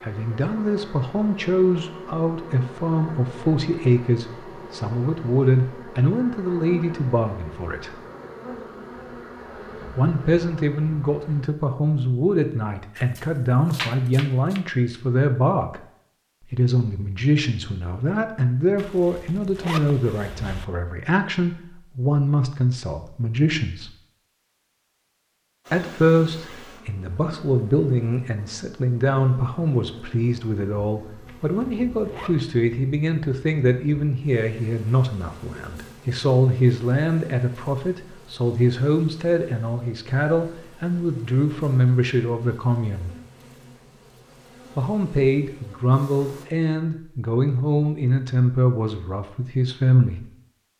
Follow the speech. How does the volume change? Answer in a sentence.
The loudness of the speech stays about the same.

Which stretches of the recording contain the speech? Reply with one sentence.
You can hear the speech from 0.0 to 8.0 s, from 9.9 to 15.8 s, from 16.5 to 23.9 s, from 25.7 to 43.1 s and from 44.8 to 50.2 s.